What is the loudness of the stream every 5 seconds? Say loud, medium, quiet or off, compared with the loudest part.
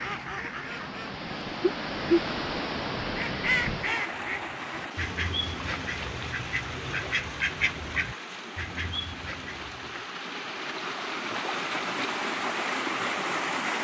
loud, medium, loud.